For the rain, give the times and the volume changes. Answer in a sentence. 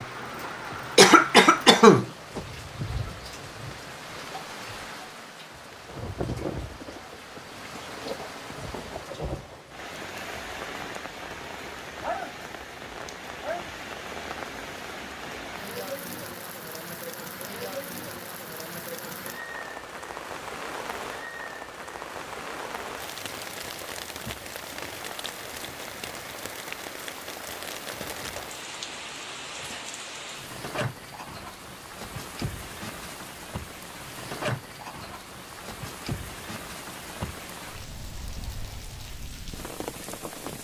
The rain can be heard from 0.0 to 40.5 s, at a steady volume.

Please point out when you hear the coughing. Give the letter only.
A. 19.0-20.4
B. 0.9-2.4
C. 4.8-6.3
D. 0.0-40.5
B.